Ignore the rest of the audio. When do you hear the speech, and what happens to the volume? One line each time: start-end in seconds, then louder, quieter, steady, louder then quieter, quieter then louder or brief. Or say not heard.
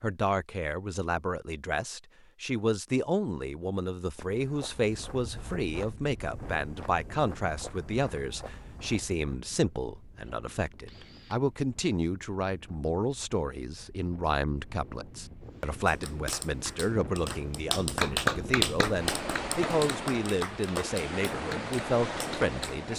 0.0-22.9 steady.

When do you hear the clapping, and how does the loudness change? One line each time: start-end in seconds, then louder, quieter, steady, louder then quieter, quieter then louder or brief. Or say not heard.
15.8-22.8 louder then quieter.